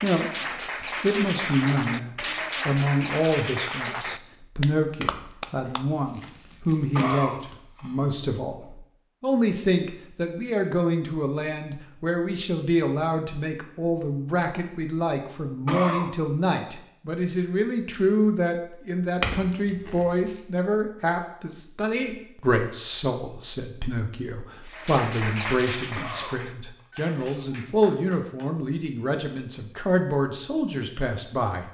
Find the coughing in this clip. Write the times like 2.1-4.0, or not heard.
7.0-8.0, 15.7-16.1, 25.9-26.8.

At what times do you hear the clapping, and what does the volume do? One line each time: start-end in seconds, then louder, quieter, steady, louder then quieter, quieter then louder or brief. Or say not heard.
0.0-5.8 steady
24.6-28.8 quieter.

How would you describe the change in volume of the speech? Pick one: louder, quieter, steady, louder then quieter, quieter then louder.
steady.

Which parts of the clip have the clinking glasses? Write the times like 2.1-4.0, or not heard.
5.0-7.5, 19.2-20.4.